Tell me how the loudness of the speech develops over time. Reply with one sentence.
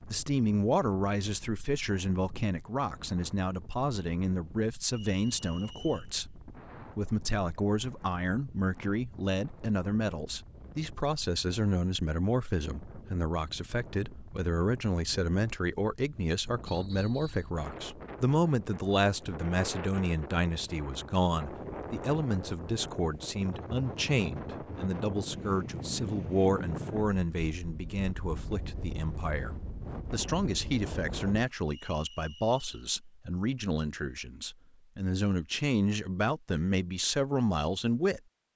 The loudness of the speech stays about the same.